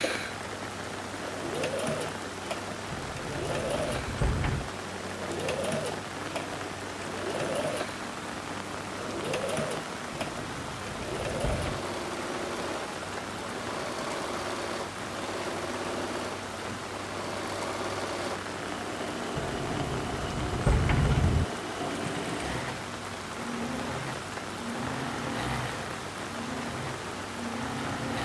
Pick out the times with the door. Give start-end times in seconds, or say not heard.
2.9-4.7, 10.2-11.8, 19.4-21.4.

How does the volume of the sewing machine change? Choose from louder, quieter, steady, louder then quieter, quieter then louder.
steady.